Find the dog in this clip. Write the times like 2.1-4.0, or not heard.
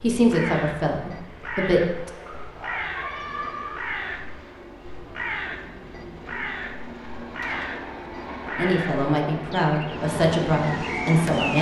2.2-3.8.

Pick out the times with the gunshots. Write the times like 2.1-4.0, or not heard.
7.4-8.0.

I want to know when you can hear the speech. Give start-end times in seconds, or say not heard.
0.0-2.1, 8.6-11.5.